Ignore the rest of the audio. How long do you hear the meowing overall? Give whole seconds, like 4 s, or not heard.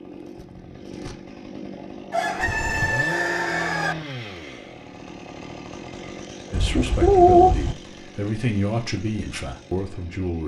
2 s.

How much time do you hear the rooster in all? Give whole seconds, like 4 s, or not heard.
2 s.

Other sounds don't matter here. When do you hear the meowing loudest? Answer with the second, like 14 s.
7 s.